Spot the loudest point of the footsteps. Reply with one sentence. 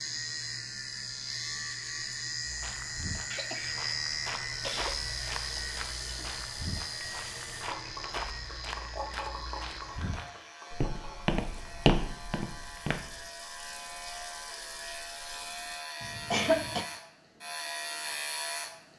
The loudest moment of the footsteps is at 12 seconds.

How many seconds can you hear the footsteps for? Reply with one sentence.
The footsteps can be heard for 11 seconds in total.